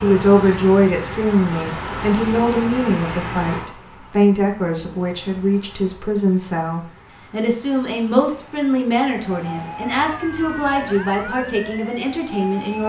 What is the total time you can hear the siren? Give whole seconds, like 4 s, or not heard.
4 s.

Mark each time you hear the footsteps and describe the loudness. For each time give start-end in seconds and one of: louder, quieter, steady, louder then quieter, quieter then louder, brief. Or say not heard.
not heard.